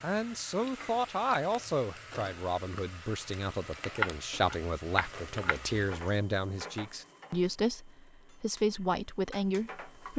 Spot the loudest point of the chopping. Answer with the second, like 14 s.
4 s.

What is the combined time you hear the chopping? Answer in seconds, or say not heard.
2 s.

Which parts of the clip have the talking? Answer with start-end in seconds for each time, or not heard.
0.0-10.1.